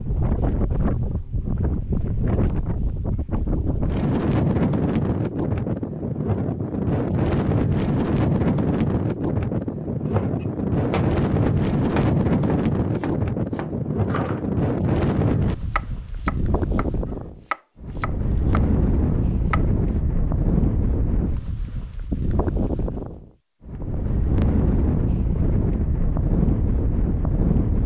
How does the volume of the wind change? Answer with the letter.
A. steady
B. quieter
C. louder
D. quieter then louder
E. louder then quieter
A.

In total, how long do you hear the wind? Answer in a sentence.
You can hear the wind for 28 seconds altogether.